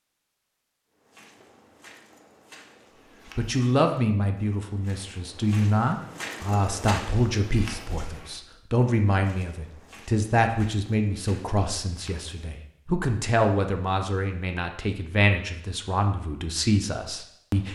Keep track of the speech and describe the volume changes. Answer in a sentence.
The volume of the speech stays about the same.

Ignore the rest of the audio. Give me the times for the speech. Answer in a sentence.
You can hear the speech from 3.4 to 17.7 s.